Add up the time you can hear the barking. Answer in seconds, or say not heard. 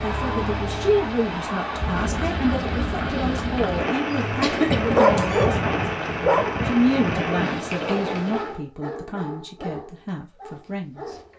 7 s.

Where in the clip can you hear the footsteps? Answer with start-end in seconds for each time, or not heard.
not heard.